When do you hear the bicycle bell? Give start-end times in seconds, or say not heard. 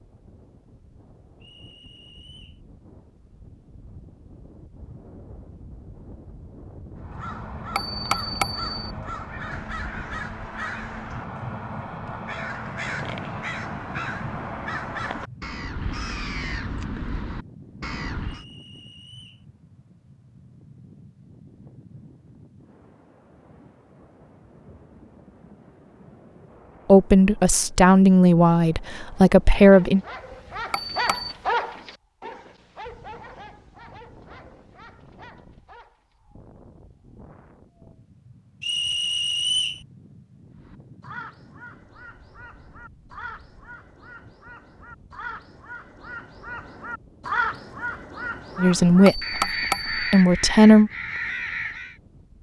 7.8-8.7, 30.7-31.4, 49.0-50.2.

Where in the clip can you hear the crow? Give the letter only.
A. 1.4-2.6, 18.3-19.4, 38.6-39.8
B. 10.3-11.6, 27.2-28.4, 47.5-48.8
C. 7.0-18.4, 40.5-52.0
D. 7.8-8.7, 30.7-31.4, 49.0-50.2
C.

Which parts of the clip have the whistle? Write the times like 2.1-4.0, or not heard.
1.4-2.6, 18.3-19.4, 38.6-39.8.